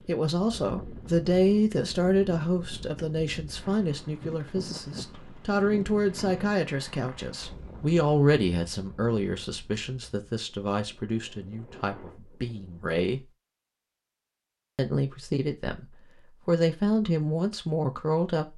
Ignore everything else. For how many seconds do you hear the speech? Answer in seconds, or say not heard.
17 s.